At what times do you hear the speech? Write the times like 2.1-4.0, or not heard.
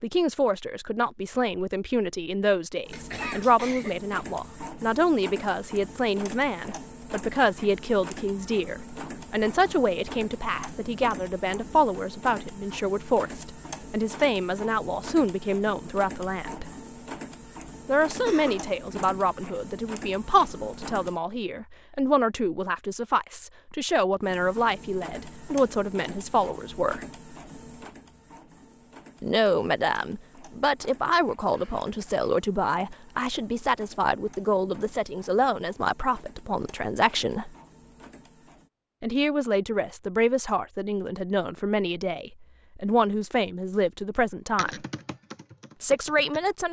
0.0-16.6, 17.9-27.1, 29.2-37.5, 39.0-44.8, 45.8-46.6.